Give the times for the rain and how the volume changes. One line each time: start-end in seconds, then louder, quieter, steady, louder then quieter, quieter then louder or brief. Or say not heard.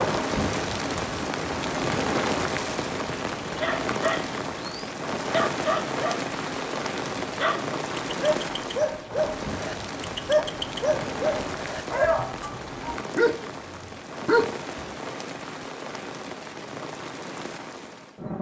0.0-18.3 quieter.